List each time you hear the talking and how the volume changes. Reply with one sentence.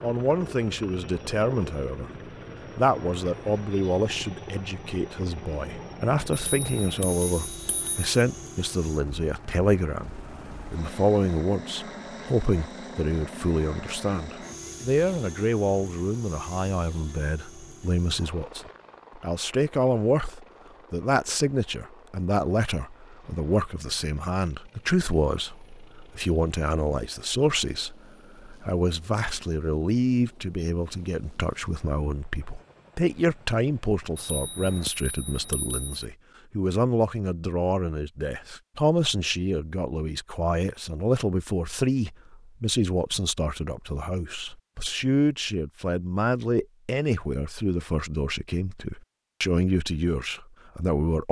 The talking can be heard briefly from 0.0 to 2.1 s; and from 2.8 to 51.2 s, at a steady volume.